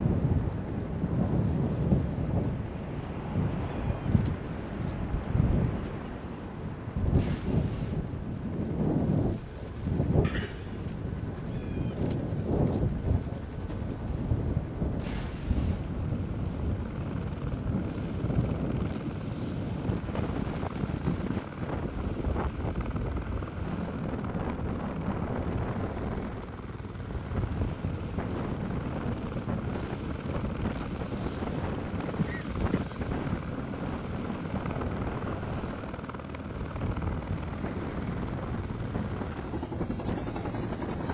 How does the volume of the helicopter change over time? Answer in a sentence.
The volume of the helicopter goes up.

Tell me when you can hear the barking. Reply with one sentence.
You can't hear the barking here.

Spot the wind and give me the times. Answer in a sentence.
The wind can be heard from 0.0 to 41.0 s.